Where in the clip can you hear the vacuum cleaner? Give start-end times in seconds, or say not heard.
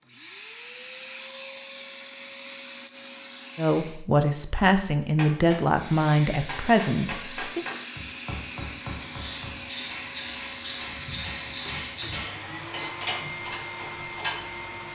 0.0-4.0, 5.7-14.9.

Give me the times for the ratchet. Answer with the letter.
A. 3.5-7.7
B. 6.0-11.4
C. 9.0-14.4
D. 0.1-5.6
C.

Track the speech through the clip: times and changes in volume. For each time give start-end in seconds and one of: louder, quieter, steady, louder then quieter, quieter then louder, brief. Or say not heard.
3.5-7.7 steady.